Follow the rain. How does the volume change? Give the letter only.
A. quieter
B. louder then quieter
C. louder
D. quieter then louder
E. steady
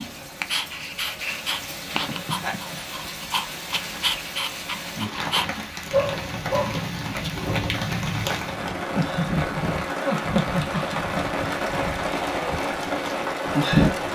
C.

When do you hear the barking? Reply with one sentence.
The barking can be heard from 0.0 to 8.6 s.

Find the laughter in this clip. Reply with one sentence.
The laughter can be heard from 1.9 to 2.8 s and from 8.9 to 11.2 s.